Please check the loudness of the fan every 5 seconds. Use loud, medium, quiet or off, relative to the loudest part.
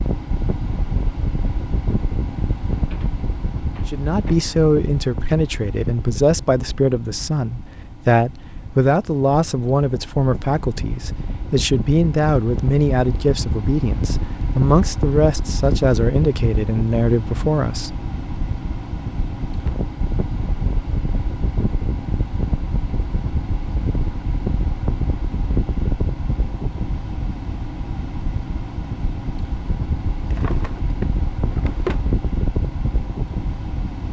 loud, medium, loud, loud, loud, loud, loud.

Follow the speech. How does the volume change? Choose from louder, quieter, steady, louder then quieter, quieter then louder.
steady.